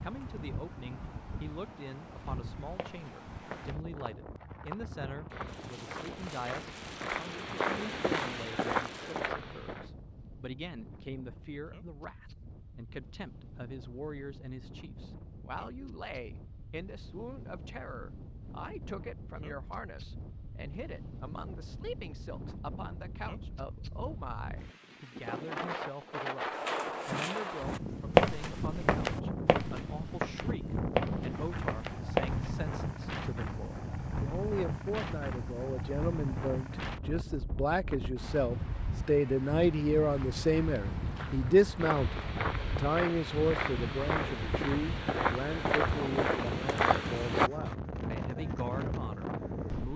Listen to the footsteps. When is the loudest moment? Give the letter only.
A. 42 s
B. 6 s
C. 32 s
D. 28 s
D.